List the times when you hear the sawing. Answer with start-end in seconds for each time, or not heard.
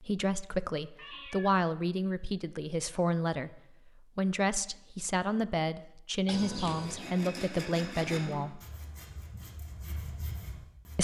6.7-10.9.